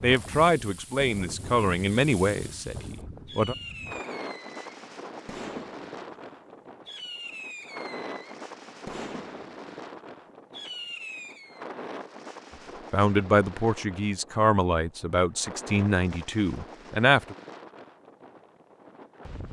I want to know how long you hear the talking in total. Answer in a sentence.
You can hear the talking for 8 seconds altogether.